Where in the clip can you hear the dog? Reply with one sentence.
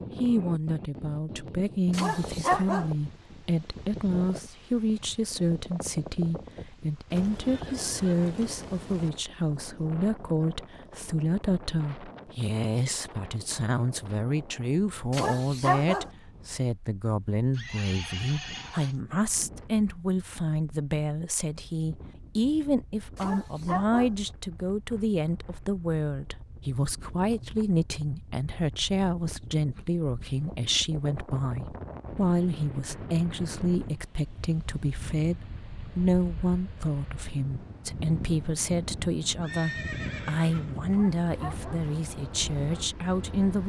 You can hear the dog from 1.9 to 2.9 s, from 15.1 to 16.1 s, from 23.1 to 24.1 s and from 40.9 to 41.9 s.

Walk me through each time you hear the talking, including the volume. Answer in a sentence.
You can hear the talking from 0.1 to 43.6 s, at a steady volume.